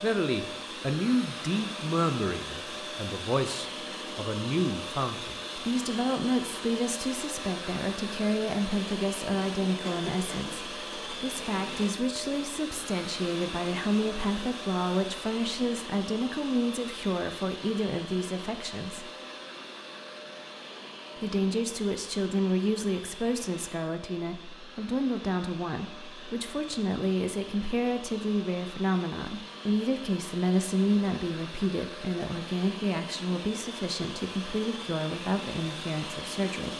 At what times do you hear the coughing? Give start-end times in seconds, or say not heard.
9.8-10.7.